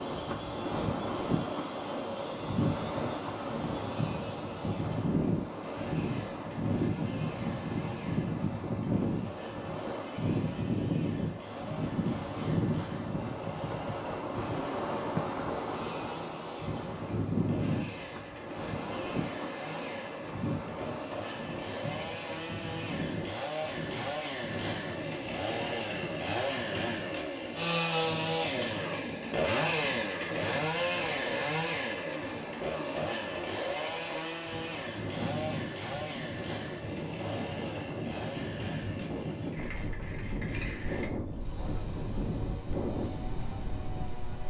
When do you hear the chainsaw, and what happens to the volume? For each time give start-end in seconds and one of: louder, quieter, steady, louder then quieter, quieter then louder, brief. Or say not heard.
0.0-44.4 louder then quieter.